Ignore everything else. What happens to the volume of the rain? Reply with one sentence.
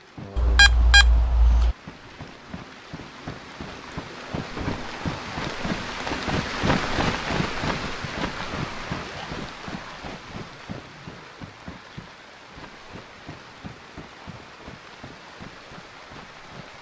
The volume of the rain goes up, then down.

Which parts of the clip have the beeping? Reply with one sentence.
You can hear the beeping from 0.3 to 1.8 s.